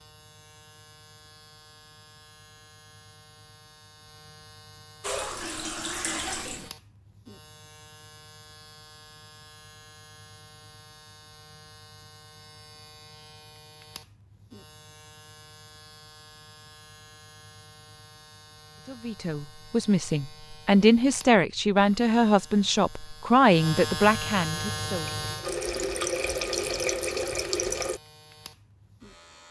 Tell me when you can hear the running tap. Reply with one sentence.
The running tap can be heard from 5.0 to 6.7 s and from 24.6 to 28.0 s.